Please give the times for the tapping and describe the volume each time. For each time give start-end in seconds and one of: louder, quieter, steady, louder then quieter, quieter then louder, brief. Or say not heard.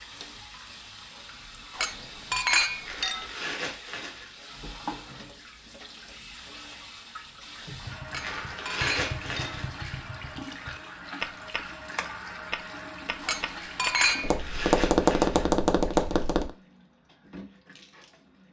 7.8-16.5 louder.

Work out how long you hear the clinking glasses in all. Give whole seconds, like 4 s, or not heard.
4 s.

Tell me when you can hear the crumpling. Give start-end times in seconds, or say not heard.
2.9-4.3, 8.2-9.7, 14.0-15.5.